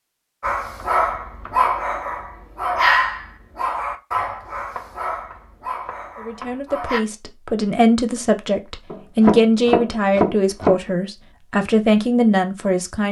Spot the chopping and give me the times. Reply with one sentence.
The chopping can be heard from 0.8 to 1.6 s, from 4.8 to 6.6 s and from 8.9 to 10.8 s.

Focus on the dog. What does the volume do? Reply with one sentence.
The volume of the dog goes down.